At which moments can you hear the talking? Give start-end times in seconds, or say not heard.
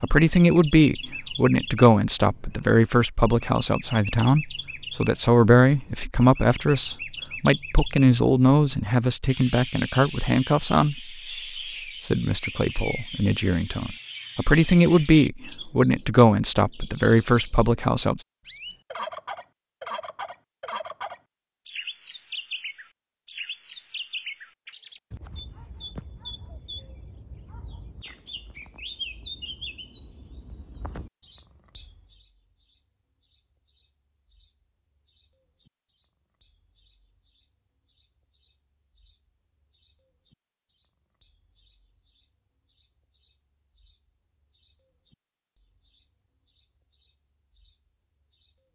0.0-11.2, 12.0-18.2.